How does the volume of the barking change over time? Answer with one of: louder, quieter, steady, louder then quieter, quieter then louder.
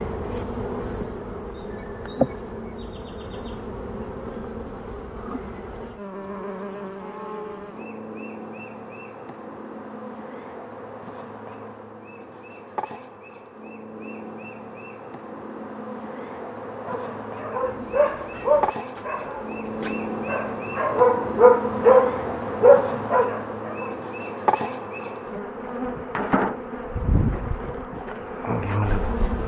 louder.